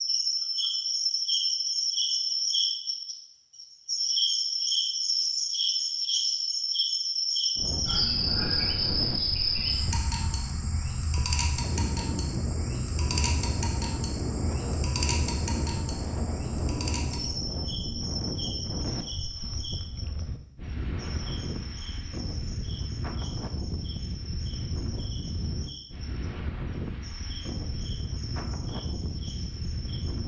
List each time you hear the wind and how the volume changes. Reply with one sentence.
The wind can be heard from 7.5 to 30.2 s, at a steady volume.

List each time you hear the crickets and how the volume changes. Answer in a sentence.
The crickets can be heard from 0.0 to 30.2 s, getting quieter.